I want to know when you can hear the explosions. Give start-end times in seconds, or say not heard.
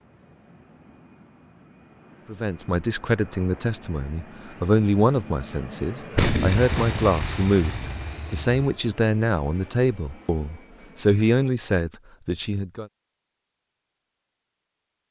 6.2-8.7.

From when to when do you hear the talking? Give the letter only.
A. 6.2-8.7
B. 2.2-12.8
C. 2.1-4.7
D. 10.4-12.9
B.